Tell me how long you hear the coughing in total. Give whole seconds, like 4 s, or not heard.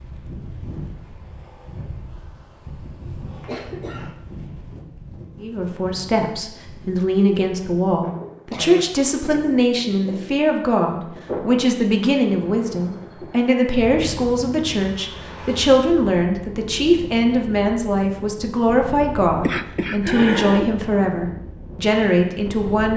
3 s.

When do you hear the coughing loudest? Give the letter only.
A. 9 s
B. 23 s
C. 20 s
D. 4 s
C.